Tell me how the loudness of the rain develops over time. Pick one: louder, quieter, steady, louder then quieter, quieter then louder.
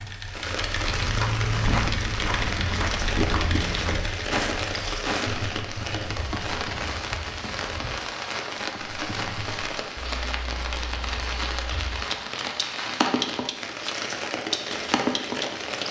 steady.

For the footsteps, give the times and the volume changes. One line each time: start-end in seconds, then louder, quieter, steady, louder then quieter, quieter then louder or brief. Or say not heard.
0.8-7.9 quieter.